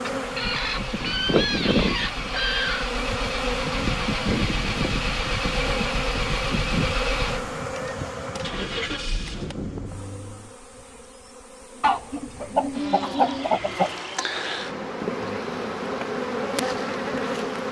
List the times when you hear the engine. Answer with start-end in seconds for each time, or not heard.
0.0-10.6.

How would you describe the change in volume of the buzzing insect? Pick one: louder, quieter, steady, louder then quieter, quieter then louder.
quieter then louder.